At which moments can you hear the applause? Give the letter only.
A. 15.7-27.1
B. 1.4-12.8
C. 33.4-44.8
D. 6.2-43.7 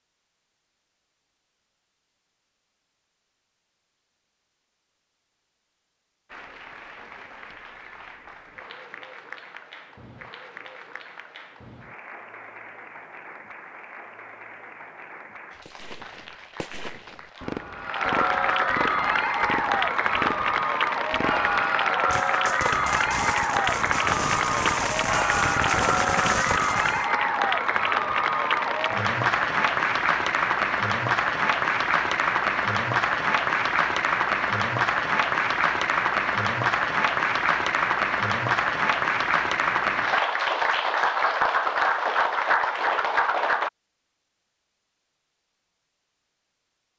D.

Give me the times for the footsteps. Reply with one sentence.
You can't hear the footsteps here.